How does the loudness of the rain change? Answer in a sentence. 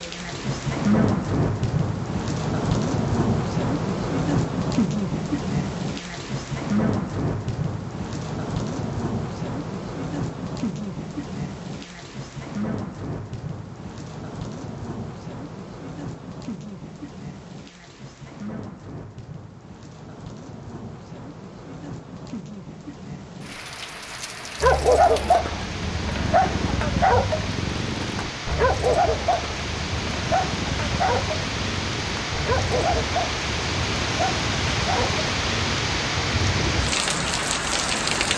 The loudness of the rain goes down, then up.